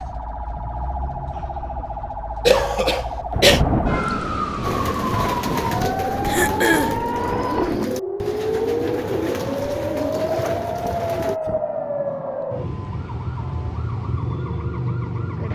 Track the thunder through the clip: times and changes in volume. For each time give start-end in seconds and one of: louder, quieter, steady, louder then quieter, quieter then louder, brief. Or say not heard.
3.3-7.9 quieter.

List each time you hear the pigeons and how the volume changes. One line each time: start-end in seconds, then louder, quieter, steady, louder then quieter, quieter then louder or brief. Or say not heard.
4.6-11.4 steady.